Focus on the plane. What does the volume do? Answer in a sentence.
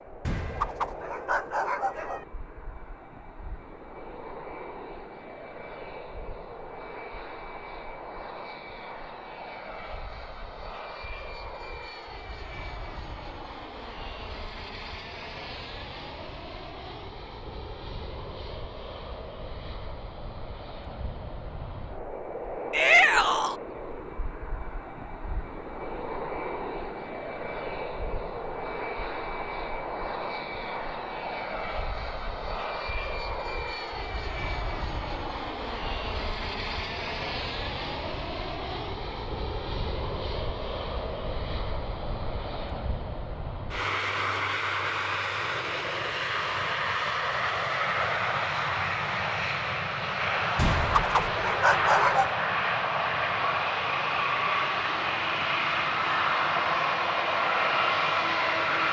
The volume of the plane goes up.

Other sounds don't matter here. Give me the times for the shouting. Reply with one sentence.
You can hear the shouting from 22.7 to 23.6 s.